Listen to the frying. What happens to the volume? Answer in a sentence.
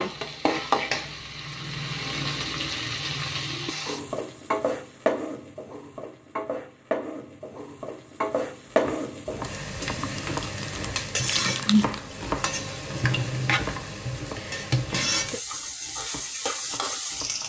The loudness of the frying stays about the same.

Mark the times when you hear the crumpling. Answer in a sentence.
The crumpling can be heard from 10.0 to 12.0 s.